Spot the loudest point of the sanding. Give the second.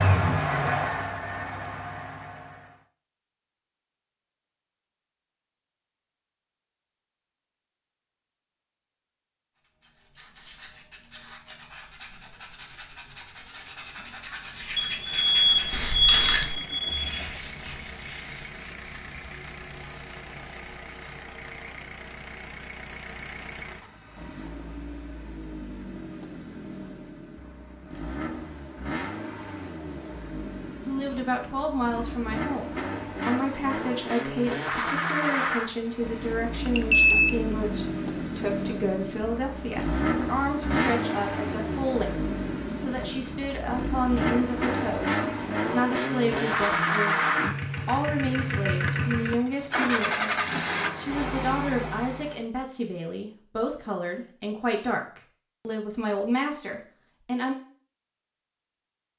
16 s.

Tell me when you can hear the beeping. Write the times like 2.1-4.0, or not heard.
14.8-17.2, 36.6-37.4.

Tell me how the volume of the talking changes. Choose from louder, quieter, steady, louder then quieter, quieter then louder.
steady.